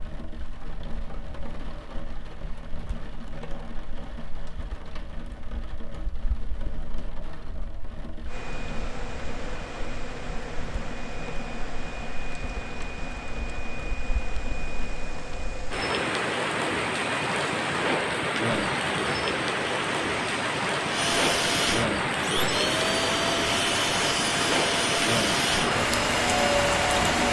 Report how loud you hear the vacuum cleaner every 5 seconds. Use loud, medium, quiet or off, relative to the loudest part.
off, quiet, quiet, quiet, loud, loud.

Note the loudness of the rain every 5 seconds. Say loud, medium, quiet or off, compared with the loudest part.
quiet, quiet, quiet, loud, loud, loud.